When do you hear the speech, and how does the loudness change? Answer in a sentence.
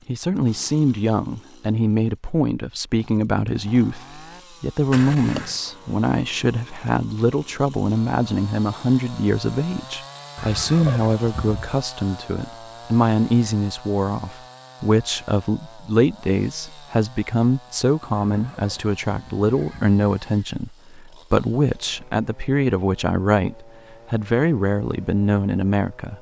The speech can be heard from 0.1 to 26.1 s, at a steady volume.